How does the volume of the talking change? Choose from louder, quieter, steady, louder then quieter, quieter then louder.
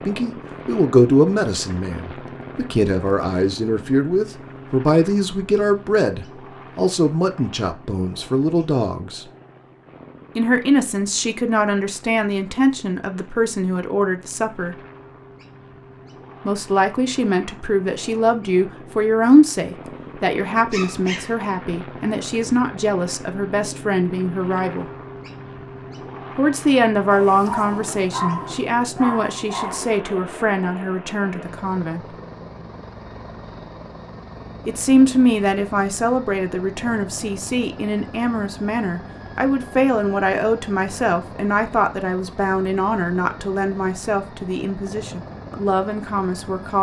steady.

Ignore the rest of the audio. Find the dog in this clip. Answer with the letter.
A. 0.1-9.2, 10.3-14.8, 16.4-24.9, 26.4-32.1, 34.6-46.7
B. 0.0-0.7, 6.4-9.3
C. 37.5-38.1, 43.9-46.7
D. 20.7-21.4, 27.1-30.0
D.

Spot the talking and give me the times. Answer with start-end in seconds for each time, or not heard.
0.1-9.2, 10.3-14.8, 16.4-24.9, 26.4-32.1, 34.6-46.7.